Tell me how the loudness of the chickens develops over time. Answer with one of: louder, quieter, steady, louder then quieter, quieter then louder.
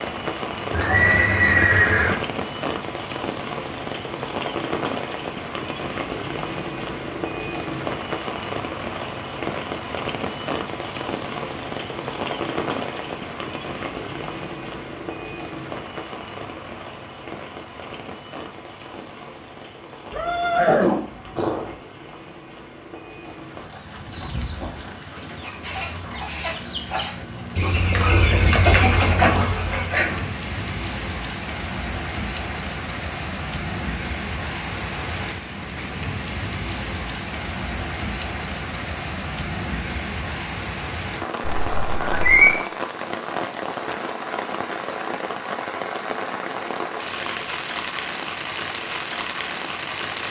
louder.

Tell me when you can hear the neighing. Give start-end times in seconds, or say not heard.
0.7-2.1, 20.1-21.7, 41.4-42.5.